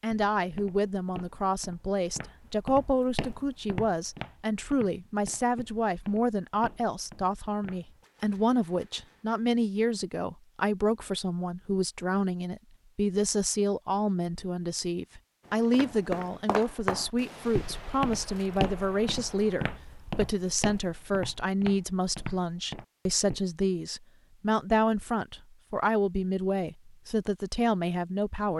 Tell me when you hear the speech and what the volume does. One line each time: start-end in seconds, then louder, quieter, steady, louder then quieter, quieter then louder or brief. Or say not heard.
0.0-28.5 steady.